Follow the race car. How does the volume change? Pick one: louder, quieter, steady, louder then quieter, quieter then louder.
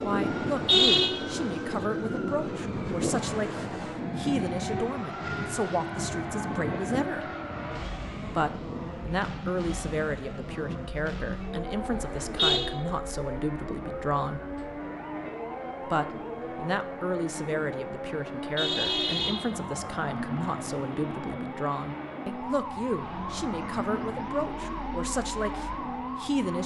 steady.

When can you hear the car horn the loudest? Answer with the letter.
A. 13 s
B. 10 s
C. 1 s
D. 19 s
C.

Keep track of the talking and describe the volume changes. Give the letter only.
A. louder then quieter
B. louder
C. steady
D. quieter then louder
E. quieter
C.